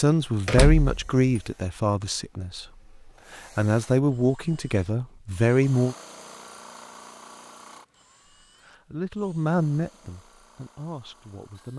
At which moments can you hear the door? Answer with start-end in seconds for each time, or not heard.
0.5-1.4.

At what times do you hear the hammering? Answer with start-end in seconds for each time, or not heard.
not heard.